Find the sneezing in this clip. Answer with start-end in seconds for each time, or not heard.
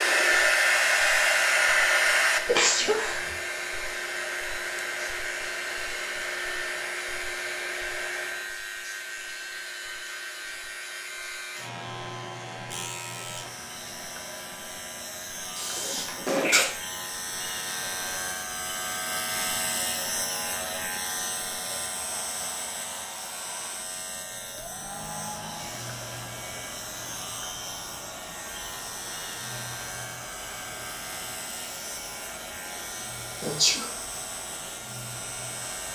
2.5-3.4, 15.6-16.7, 33.4-33.9.